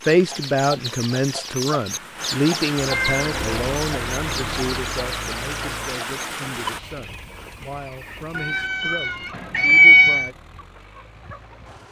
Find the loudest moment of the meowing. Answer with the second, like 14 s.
10 s.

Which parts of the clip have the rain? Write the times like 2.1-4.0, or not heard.
0.0-6.8.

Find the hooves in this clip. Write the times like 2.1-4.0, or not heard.
not heard.